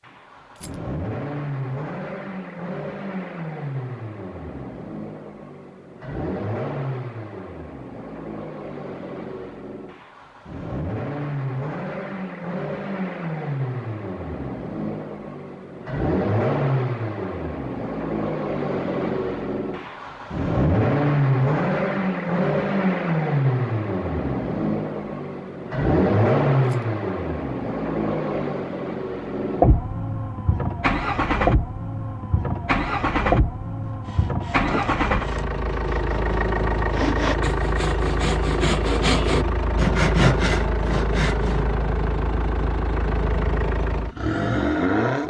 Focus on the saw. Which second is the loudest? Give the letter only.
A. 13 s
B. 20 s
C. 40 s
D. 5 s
C.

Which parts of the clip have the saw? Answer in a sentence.
You can hear the saw from 34.0 to 41.6 s.